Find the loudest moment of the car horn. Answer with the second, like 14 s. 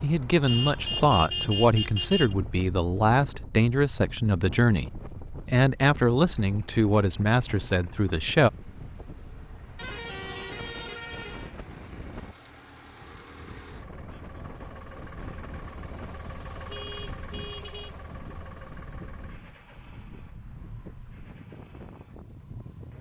1 s.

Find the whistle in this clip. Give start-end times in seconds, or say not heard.
not heard.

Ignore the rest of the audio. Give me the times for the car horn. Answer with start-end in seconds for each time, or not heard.
0.5-2.4, 9.8-11.5, 16.6-17.9.